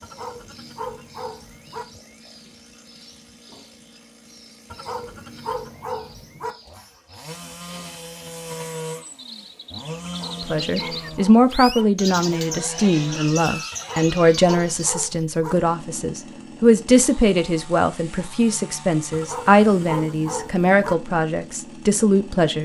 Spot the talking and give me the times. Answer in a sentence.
The talking can be heard from 10.4 to 22.5 s.